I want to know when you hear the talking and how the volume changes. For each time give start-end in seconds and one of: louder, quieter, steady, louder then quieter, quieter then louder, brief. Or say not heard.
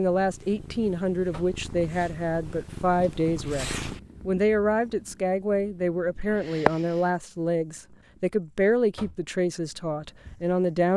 0.0-10.9 steady.